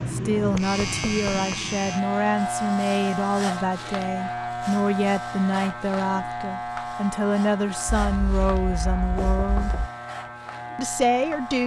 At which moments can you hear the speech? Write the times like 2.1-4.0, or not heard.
0.1-9.8, 10.8-11.6.